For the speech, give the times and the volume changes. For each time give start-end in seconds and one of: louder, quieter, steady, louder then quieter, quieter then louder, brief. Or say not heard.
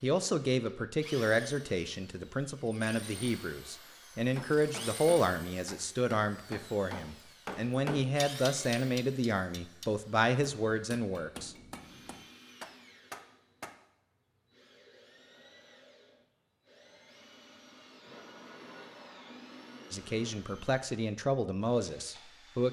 0.0-11.6 steady
19.9-22.6 brief.